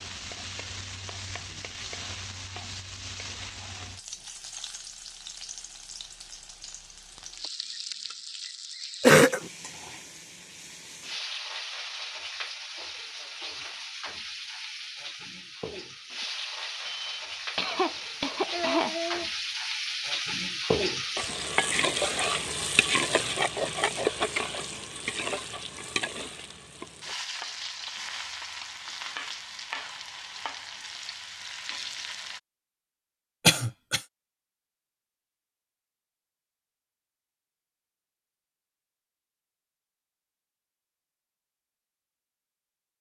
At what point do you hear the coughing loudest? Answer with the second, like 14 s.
9 s.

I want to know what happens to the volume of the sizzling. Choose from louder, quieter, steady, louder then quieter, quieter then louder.
louder then quieter.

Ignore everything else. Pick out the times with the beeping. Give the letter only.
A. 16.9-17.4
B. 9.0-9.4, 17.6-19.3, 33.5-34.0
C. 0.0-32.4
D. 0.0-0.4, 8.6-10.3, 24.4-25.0
A.